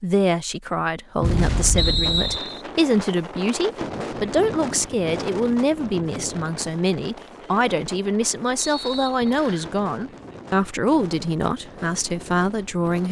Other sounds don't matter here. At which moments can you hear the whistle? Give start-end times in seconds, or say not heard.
1.8-2.6, 8.6-9.7.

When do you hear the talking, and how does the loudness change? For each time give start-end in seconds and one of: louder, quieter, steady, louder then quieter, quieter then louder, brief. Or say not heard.
0.0-13.0 steady.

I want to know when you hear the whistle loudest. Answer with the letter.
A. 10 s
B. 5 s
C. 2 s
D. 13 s
C.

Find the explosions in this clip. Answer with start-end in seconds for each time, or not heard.
1.2-2.4.